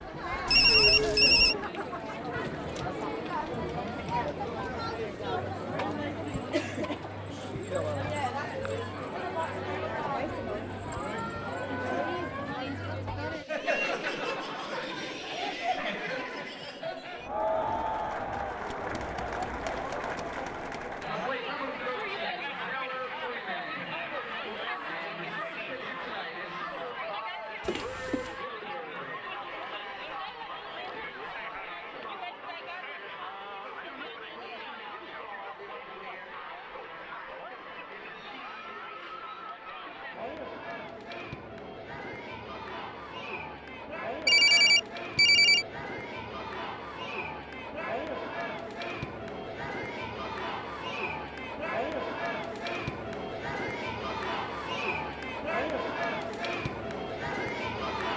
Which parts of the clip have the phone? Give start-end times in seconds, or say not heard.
0.5-1.6, 27.6-28.3, 44.2-45.6.